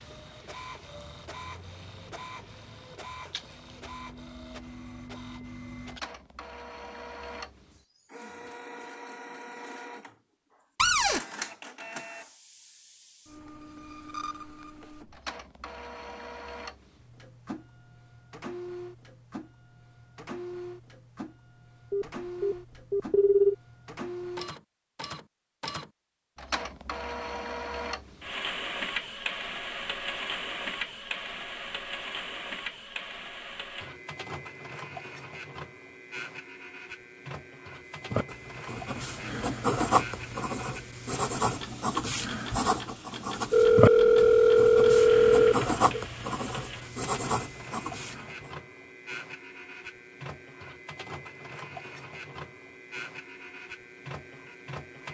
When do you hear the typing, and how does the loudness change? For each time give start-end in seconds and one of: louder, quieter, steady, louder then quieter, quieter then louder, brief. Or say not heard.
not heard.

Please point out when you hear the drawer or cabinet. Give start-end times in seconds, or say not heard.
10.8-11.2.